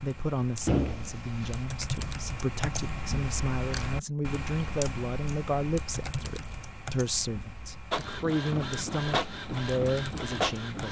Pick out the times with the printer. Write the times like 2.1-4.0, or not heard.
7.9-10.8.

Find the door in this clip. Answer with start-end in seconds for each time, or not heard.
0.7-1.6.